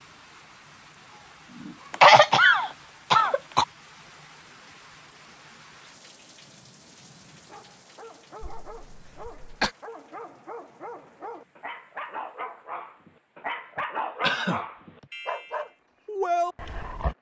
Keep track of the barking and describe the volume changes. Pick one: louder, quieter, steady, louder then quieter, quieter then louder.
louder.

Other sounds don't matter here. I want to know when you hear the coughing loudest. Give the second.
2 s.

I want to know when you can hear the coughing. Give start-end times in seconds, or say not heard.
1.9-3.6, 8.4-9.8, 13.8-14.6.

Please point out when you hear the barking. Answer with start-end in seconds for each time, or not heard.
7.3-17.1.